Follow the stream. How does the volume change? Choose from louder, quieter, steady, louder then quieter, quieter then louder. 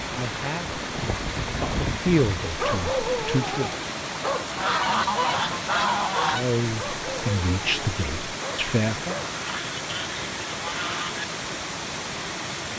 steady.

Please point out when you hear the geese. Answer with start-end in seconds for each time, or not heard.
0.9-2.2, 4.5-6.5, 9.2-11.2.